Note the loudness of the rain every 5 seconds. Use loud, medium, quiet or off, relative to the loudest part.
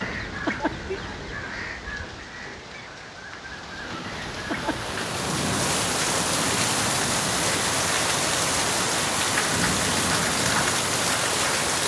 quiet, loud, loud.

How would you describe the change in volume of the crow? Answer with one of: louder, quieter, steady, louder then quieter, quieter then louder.
quieter then louder.